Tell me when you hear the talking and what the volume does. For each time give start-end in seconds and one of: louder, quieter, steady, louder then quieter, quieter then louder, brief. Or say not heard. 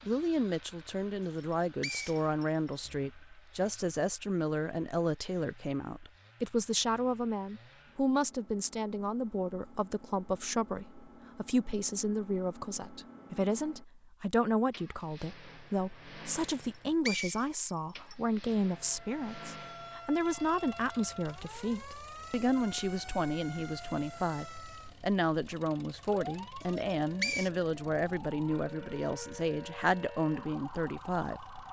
0.1-31.6 steady.